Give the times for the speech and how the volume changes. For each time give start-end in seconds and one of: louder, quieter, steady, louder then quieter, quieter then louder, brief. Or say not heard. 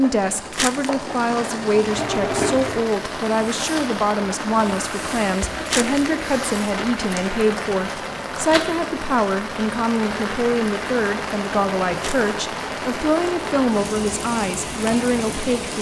0.0-15.7 steady.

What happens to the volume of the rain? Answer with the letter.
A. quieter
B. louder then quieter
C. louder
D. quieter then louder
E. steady
E.